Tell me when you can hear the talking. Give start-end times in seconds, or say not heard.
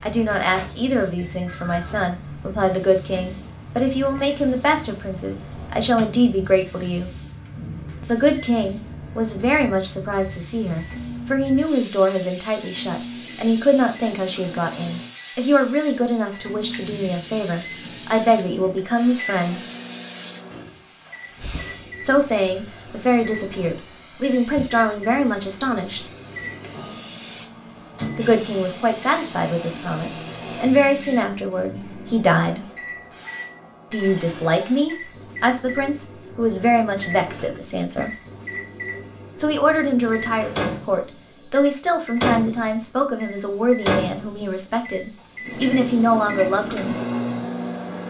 0.0-7.1, 8.1-19.6, 22.0-26.1, 28.1-32.6, 33.9-38.1, 39.4-47.0.